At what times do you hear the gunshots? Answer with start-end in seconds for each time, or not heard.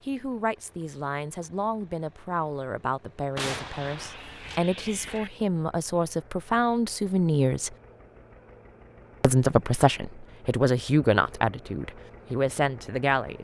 3.4-5.3.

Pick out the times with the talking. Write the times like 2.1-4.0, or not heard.
0.1-7.8, 9.2-13.3.